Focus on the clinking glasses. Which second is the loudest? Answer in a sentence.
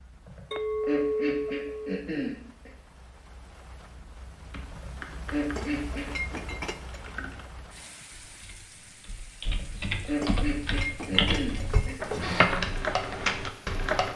The loudest moment of the clinking glasses is at 1 second.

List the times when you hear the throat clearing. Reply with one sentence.
You can hear the throat clearing from 0.2 to 2.7 s, from 4.7 to 6.3 s and from 9.4 to 11.9 s.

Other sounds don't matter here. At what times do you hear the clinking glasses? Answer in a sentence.
The clinking glasses can be heard from 0.5 to 2.0 s, from 5.3 to 7.1 s and from 10.0 to 12.3 s.